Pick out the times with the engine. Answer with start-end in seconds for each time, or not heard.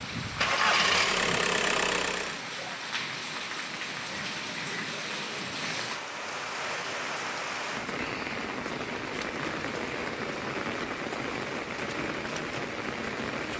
0.3-2.4.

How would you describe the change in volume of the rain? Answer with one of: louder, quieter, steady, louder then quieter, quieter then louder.
steady.